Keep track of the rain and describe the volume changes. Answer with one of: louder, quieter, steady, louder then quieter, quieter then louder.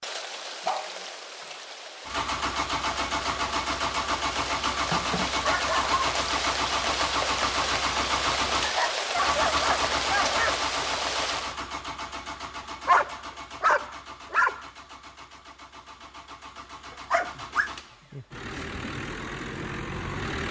louder.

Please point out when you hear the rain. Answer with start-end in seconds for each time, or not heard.
0.0-11.6.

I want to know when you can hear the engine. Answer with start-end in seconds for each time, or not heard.
2.0-20.4.